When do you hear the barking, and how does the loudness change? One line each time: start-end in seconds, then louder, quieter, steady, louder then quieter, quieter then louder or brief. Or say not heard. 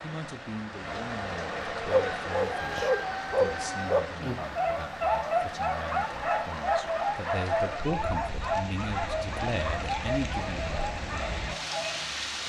1.9-12.2 quieter.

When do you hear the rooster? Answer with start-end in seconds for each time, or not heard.
0.8-4.3.